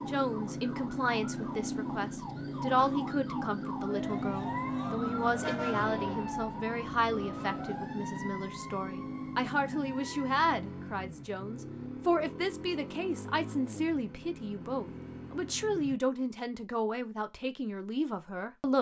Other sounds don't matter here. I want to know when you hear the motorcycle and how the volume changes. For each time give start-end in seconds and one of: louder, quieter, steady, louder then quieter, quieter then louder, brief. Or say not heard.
0.0-15.9 quieter.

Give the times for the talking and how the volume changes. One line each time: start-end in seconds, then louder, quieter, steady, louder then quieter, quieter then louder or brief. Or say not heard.
0.0-18.7 steady.